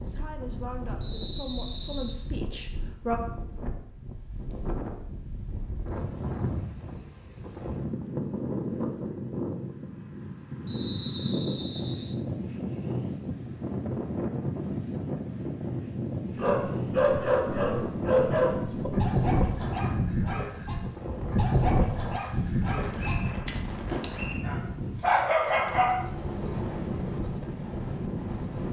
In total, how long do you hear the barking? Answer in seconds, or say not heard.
10 s.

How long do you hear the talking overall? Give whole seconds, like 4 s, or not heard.
3 s.